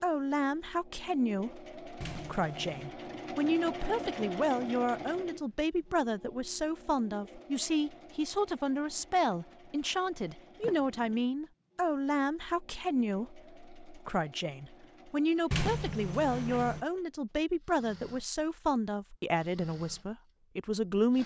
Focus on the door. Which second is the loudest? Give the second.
16 s.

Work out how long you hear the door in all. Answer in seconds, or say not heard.
3 s.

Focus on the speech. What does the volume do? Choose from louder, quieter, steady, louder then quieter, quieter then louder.
steady.